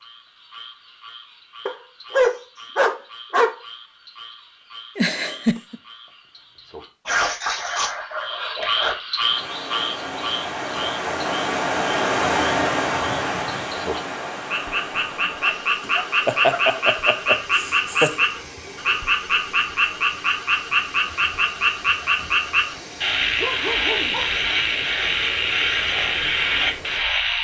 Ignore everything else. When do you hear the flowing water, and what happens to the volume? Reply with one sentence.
The flowing water can be heard from 9.2 to 27.3 s, getting quieter.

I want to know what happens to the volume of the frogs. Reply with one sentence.
The volume of the frogs goes up.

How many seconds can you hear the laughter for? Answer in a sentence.
You can hear the laughter for 3 seconds altogether.